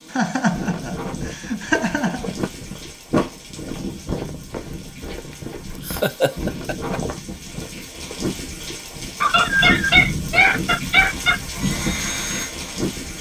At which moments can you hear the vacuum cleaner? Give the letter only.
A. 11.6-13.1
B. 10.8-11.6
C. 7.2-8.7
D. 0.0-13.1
A.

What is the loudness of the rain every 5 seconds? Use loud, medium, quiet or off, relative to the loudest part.
medium, loud, loud.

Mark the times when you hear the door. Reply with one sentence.
You can hear the door from 3.1 to 3.8 s.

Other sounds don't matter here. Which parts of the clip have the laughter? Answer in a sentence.
The laughter can be heard from 0.1 to 2.3 s, from 5.8 to 7.0 s and from 9.2 to 11.4 s.